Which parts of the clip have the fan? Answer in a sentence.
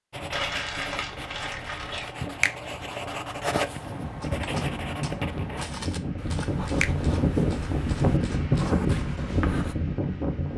You can hear the fan from 3.7 to 10.5 s.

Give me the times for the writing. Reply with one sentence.
The writing can be heard from 0.1 to 9.8 s.